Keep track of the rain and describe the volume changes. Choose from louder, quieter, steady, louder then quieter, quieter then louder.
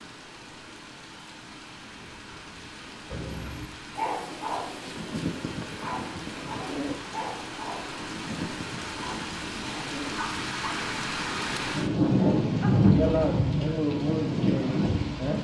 louder.